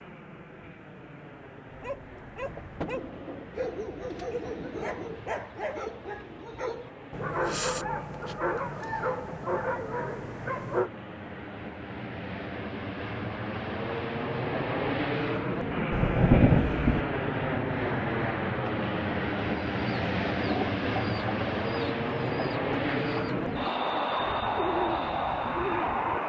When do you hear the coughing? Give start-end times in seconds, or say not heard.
not heard.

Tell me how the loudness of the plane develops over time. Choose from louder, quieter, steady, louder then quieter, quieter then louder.
louder.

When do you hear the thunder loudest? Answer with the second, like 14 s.
16 s.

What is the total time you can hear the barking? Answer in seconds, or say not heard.
9 s.